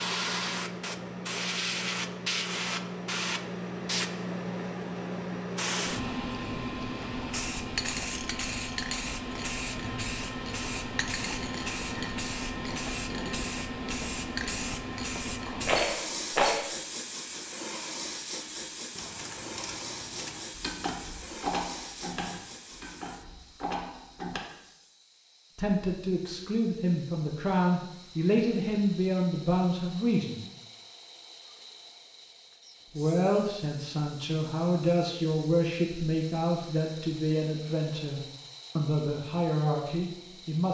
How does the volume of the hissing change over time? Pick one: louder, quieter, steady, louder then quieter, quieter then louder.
quieter.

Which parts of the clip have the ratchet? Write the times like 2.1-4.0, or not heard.
18.9-24.4.